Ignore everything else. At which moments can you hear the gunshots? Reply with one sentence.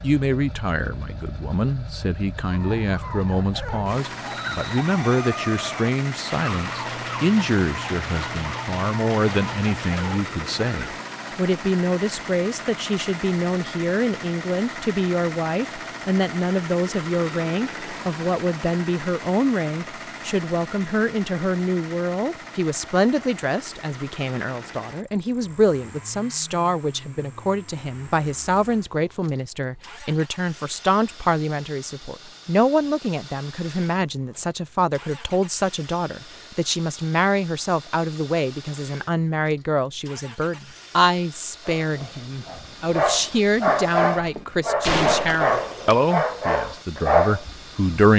You can hear the gunshots from 6.2 to 10.2 s and from 43.3 to 46.0 s.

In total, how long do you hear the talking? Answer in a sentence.
You can hear the talking for 48 seconds altogether.